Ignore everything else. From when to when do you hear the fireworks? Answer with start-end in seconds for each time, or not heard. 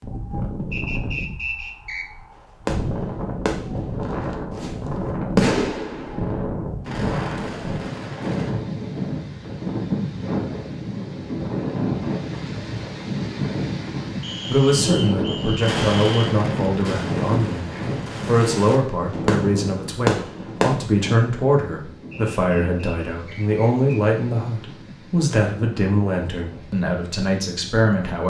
2.6-4.8, 5.3-8.5, 15.6-20.9.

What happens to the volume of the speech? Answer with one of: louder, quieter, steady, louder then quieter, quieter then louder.
steady.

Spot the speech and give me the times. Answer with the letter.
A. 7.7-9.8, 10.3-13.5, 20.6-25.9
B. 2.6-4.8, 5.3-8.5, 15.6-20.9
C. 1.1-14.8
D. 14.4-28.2
D.